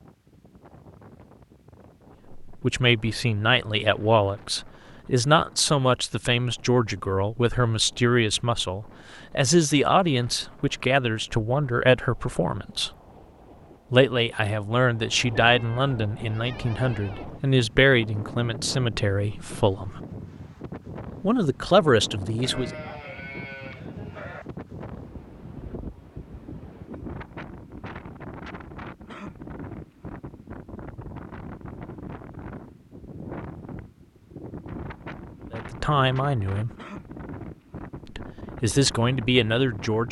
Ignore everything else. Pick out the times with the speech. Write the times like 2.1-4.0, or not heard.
2.5-12.9, 13.9-20.0, 21.2-22.8, 35.5-36.7, 38.1-40.0.